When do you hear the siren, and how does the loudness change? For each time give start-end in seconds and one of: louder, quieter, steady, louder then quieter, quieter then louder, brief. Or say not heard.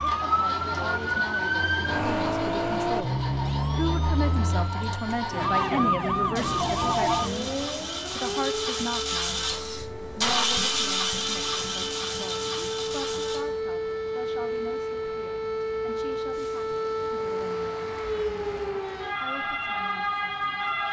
0.0-20.8 quieter then louder.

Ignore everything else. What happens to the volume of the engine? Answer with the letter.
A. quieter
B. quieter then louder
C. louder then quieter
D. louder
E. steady
D.